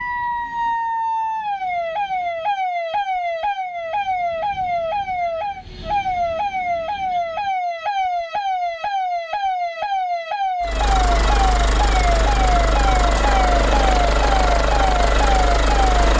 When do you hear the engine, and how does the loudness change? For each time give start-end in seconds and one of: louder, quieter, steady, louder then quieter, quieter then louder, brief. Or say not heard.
10.6-16.1 steady.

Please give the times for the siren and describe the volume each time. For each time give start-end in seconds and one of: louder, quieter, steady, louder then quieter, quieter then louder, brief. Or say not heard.
0.0-16.0 steady.